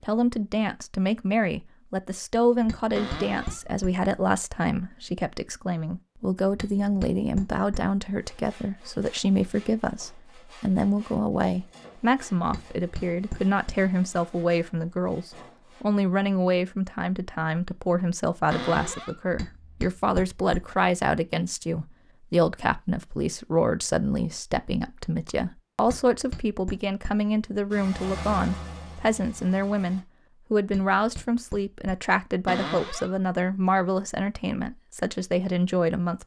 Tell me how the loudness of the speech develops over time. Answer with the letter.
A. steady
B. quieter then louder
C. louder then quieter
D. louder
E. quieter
A.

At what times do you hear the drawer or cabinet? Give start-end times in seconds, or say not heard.
3.0-3.6, 18.5-19.1, 32.5-33.1.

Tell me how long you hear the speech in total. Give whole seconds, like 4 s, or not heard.
36 s.